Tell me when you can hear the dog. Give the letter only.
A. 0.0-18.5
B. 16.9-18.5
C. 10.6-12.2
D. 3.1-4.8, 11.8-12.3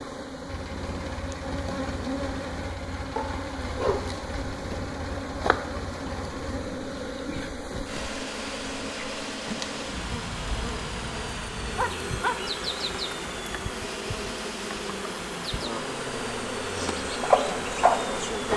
D.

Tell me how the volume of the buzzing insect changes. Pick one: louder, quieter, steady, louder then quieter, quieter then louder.
steady.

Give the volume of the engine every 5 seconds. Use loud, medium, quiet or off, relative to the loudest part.
medium, loud, loud, loud.